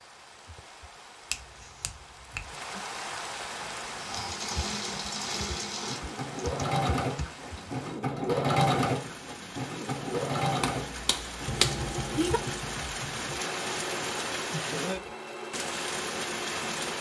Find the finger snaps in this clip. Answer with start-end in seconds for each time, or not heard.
1.3-2.5, 10.6-12.4.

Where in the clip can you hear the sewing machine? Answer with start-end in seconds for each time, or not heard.
3.5-16.9.